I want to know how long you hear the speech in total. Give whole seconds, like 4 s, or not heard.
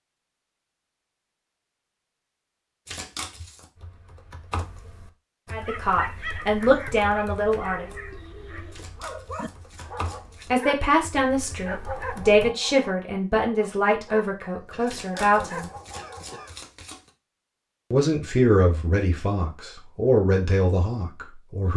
11 s.